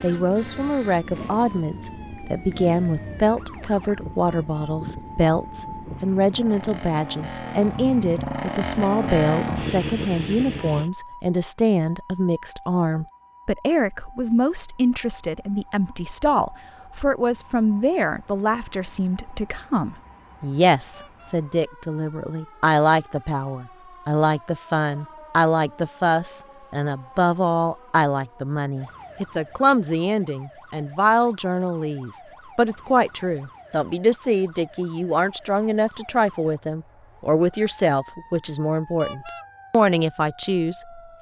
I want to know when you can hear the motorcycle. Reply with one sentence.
You can hear the motorcycle from 0.2 to 10.9 s.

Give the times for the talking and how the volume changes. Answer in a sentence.
The talking can be heard from 0.0 to 41.1 s, at a steady volume.